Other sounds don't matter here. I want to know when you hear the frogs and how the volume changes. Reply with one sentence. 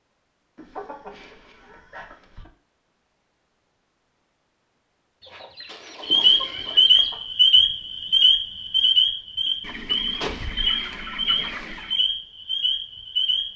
You can hear the frogs from 6.0 to 13.5 s, getting quieter.